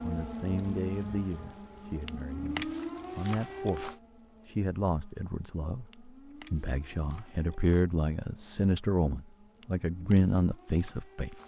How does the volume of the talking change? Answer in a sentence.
The volume of the talking goes up.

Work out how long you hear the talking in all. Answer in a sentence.
You can hear the talking for 11 seconds altogether.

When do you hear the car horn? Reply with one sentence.
You can't hear the car horn here.